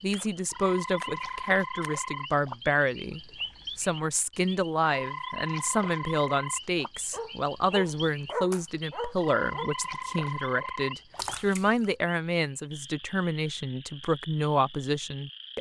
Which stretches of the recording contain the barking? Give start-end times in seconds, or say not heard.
7.1-9.7.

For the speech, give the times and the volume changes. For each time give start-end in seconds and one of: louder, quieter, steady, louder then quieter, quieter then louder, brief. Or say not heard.
0.0-15.5 steady.